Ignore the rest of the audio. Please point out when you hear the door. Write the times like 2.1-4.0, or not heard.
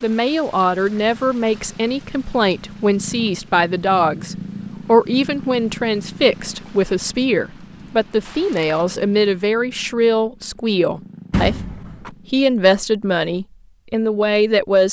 11.3-12.1.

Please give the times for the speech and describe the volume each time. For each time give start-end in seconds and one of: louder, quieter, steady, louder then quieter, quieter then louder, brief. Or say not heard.
0.0-14.8 steady.